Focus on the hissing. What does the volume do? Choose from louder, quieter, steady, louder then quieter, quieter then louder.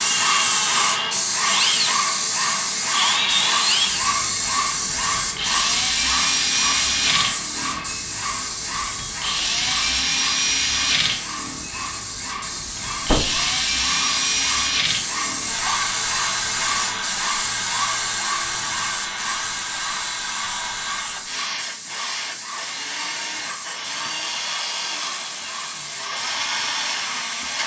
quieter.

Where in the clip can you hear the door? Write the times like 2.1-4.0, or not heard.
13.0-13.4.